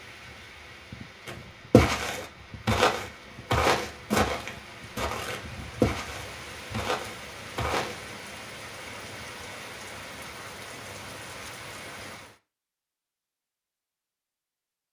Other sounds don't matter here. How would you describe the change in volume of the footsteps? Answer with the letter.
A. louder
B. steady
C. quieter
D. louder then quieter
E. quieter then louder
C.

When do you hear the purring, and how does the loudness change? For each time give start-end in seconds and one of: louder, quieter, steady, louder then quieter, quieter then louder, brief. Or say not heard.
not heard.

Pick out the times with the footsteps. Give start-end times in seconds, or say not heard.
1.2-8.0.